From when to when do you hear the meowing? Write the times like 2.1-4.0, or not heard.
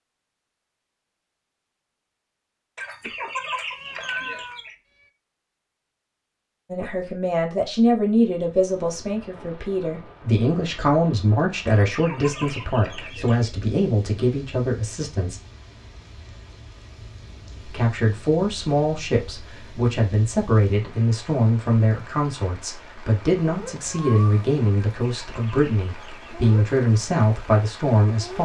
3.0-4.7, 23.8-24.4.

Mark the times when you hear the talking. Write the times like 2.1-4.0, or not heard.
6.7-15.4, 17.6-28.3.